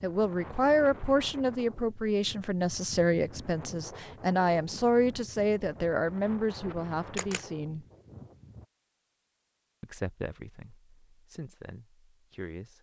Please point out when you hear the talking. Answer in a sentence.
The talking can be heard from 0.0 to 7.8 s and from 9.8 to 12.7 s.